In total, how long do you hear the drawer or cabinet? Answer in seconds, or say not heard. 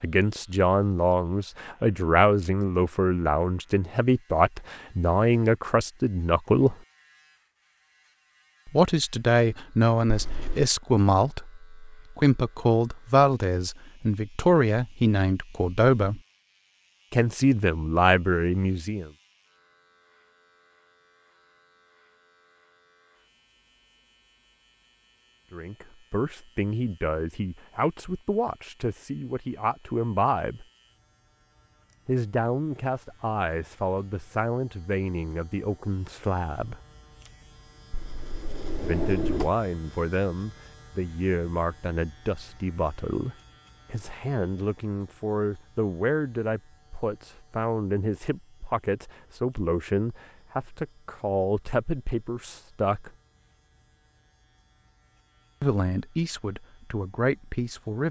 2 s.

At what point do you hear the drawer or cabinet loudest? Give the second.
39 s.